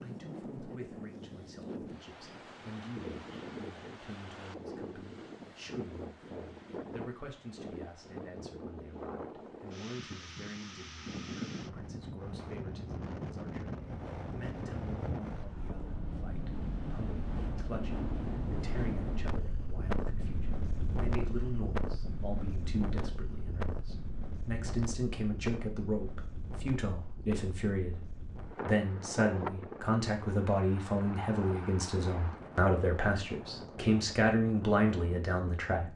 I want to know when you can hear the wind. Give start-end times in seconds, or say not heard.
0.0-35.9.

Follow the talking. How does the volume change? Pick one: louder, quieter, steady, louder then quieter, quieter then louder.
louder.